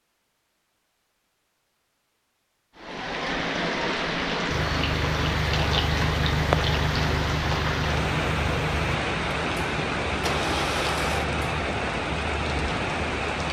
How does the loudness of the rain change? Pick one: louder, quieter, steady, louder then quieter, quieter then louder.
steady.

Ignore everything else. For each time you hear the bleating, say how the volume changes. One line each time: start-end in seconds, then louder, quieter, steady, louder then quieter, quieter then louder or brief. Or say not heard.
not heard.